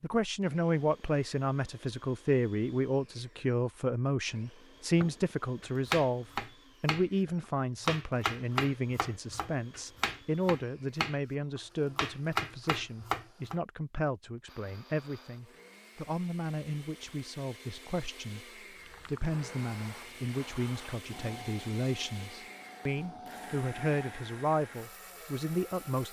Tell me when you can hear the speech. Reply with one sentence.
You can hear the speech from 0.0 to 26.0 s.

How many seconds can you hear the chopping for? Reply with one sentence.
The chopping can be heard for 8 seconds in total.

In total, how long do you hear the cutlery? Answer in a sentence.
The cutlery can't be heard in this clip.